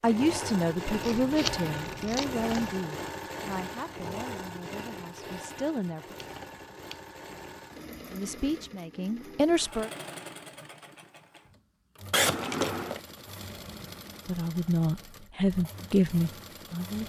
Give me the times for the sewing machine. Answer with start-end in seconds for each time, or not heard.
0.0-17.0.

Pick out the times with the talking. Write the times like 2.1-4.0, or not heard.
0.0-6.2, 8.1-9.9, 14.2-17.0.